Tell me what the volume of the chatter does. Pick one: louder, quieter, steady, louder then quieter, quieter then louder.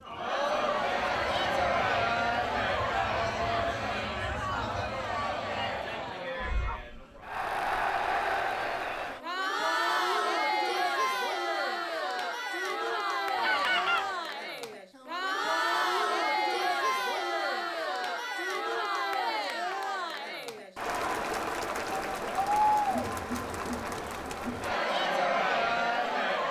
steady.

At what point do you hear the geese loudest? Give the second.
14 s.